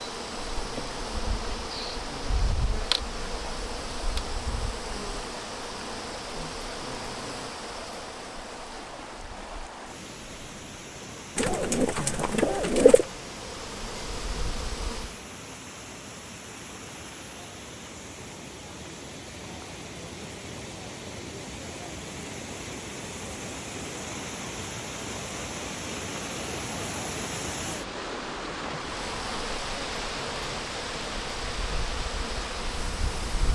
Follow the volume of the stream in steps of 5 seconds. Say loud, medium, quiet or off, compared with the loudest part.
medium, medium, medium, medium, loud, loud, loud.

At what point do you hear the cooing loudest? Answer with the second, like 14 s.
13 s.